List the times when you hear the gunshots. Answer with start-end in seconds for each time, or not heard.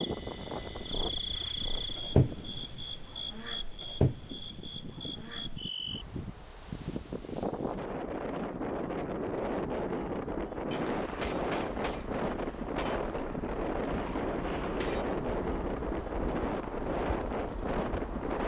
10.7-15.2.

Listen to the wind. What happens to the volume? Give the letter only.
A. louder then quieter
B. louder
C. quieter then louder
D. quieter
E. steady
B.